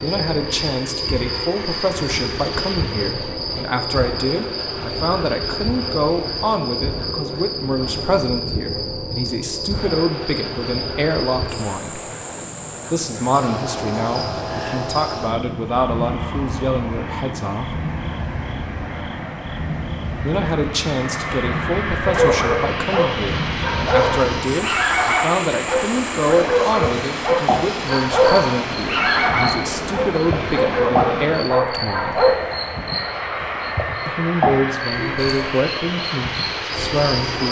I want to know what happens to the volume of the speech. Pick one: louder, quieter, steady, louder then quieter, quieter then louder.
steady.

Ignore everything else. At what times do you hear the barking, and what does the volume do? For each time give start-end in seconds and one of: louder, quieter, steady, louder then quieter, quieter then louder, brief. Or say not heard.
22.1-32.4 steady.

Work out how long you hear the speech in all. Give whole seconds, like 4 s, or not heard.
32 s.